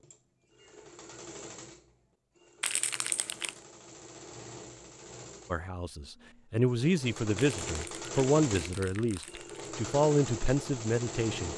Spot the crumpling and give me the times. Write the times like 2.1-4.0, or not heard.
2.6-3.5, 7.3-9.7.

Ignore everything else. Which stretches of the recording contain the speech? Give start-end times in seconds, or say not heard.
5.5-11.5.